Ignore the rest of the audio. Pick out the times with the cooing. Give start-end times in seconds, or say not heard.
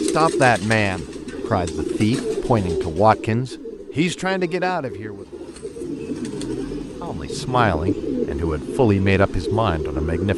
0.0-10.3.